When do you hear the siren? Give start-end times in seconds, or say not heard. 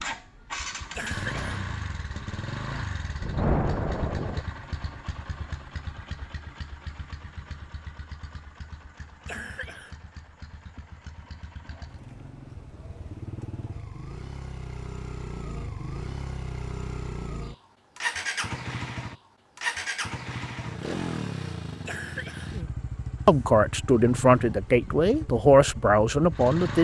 not heard.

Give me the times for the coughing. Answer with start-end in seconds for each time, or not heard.
0.7-1.5, 9.1-9.9, 21.9-23.5.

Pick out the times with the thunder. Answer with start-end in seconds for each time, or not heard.
3.2-4.5.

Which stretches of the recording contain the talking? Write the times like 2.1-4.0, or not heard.
23.2-26.8.